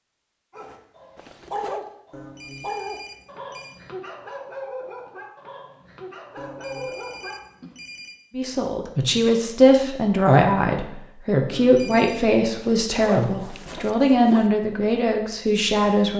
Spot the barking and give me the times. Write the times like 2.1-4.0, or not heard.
0.5-7.8.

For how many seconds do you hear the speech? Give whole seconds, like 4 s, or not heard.
8 s.